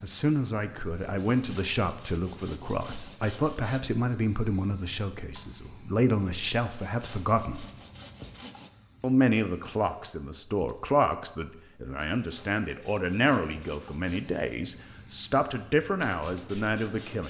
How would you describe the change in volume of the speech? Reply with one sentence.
The volume of the speech stays about the same.